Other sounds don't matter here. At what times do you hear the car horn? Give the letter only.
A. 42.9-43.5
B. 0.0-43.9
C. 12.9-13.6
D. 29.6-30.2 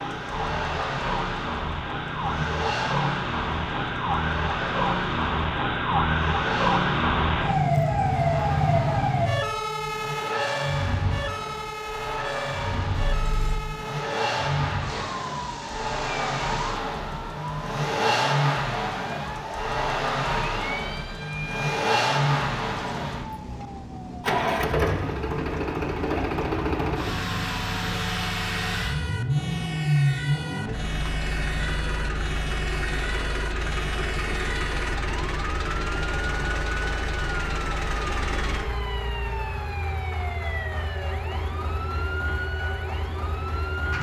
C.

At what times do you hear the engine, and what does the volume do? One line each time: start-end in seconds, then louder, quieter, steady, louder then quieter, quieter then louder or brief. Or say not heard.
0.0-43.9 louder then quieter.